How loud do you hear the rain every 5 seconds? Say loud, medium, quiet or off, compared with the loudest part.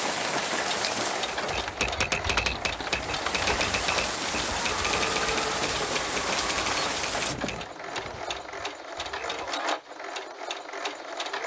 loud, loud, off.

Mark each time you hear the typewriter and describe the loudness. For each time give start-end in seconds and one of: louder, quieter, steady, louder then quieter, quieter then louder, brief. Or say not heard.
1.2-9.6 quieter.